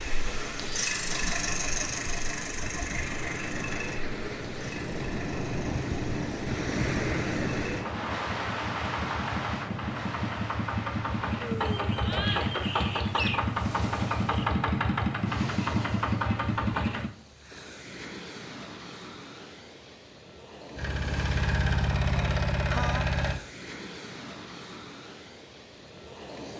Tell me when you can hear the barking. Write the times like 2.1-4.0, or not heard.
not heard.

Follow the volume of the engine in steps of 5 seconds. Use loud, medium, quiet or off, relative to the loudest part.
medium, medium, loud, loud, loud, off.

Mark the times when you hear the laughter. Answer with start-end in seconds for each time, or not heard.
22.6-23.1.